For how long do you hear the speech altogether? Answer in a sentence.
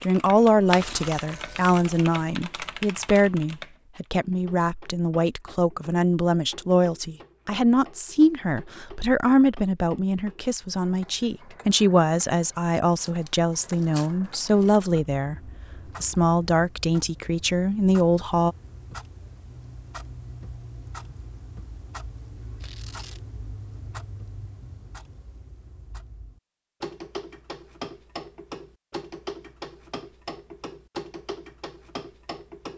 You can hear the speech for 18 seconds altogether.